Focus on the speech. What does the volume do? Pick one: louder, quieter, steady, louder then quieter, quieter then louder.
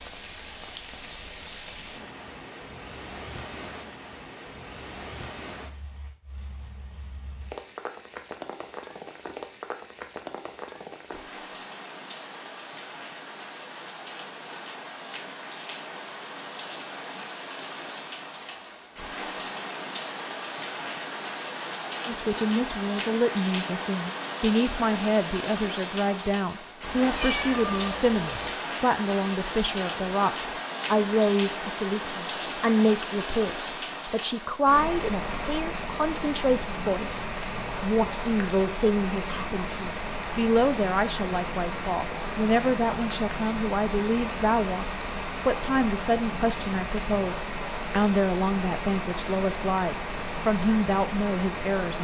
steady.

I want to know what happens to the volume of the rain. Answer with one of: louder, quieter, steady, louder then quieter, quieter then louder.
louder.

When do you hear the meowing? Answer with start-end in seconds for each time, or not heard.
26.9-28.6.